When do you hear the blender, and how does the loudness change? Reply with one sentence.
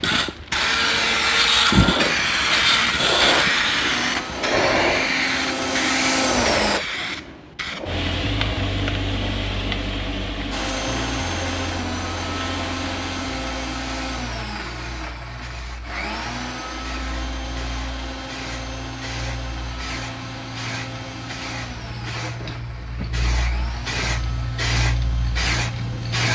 The blender can be heard from 0.0 to 6.8 s, getting quieter then louder; and from 10.5 to 26.3 s, getting quieter.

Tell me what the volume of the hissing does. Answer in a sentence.
The loudness of the hissing goes down, then up.